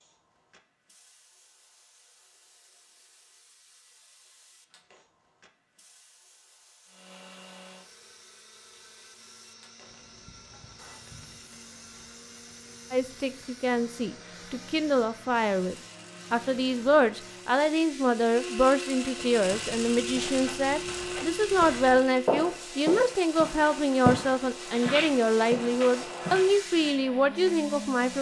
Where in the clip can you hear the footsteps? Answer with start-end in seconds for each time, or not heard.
19.1-26.6.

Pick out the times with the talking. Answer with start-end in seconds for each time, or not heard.
12.9-28.1.